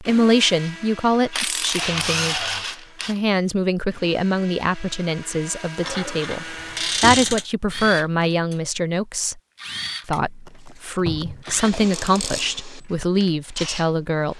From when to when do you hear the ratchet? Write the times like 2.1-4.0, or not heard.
1.3-3.2, 5.8-7.5, 10.4-12.4.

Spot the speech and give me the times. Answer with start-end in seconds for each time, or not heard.
0.0-2.5, 3.0-9.4, 10.1-14.3.